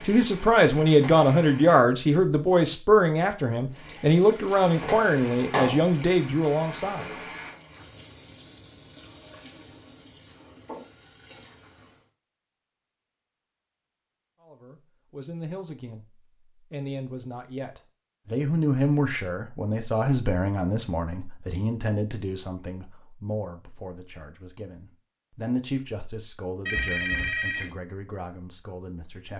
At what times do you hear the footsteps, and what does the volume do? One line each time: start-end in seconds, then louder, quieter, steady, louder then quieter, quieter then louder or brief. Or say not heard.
not heard.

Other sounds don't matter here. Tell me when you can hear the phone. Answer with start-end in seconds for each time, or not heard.
26.6-27.8.